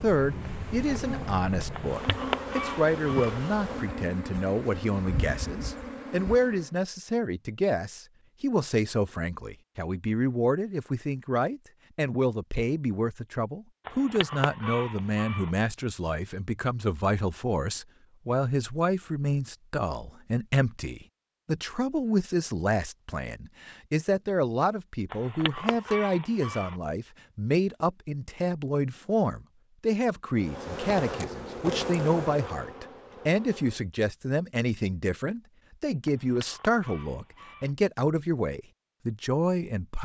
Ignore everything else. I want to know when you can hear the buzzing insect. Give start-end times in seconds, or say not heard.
0.0-6.7, 30.4-33.9.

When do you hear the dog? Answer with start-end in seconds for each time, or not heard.
not heard.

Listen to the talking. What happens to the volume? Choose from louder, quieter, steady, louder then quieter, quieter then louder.
steady.